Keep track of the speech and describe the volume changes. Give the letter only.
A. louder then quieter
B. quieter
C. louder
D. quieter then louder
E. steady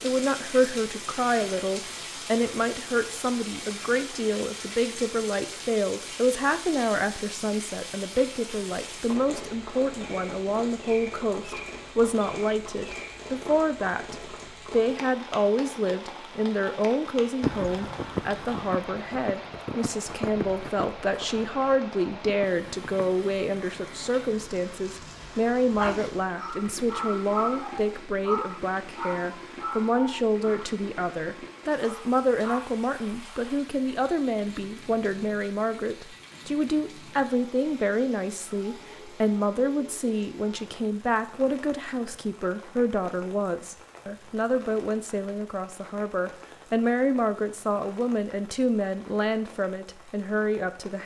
E.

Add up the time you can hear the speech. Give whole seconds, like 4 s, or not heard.
51 s.